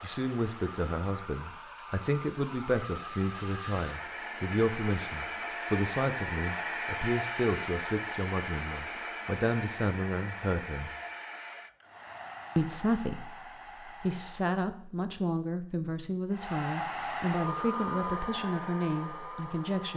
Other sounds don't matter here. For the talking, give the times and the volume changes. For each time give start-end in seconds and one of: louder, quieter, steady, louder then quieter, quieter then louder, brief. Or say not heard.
0.0-10.9 steady
12.6-19.9 steady.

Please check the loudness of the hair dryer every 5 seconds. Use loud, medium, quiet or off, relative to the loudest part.
medium, loud, medium, loud.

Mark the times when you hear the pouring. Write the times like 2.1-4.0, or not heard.
not heard.